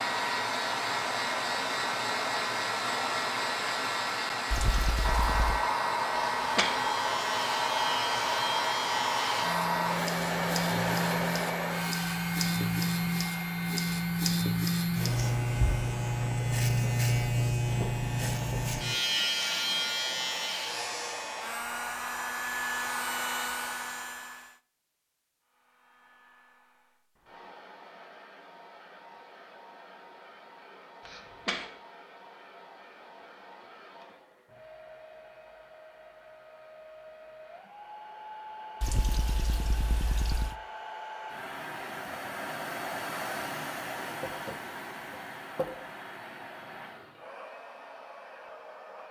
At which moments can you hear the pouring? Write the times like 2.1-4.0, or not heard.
4.5-5.6, 38.8-40.5.